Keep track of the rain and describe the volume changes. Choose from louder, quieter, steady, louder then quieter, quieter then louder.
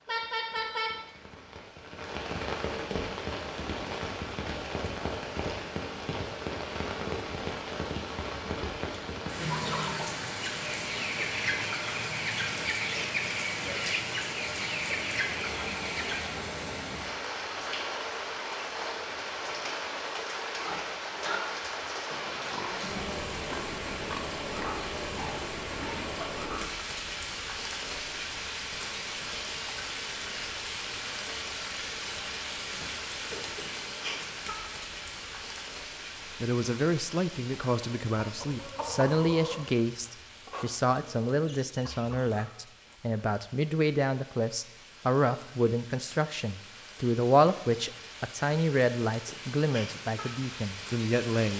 quieter.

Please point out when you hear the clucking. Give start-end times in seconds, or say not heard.
9.3-16.3, 37.8-42.4.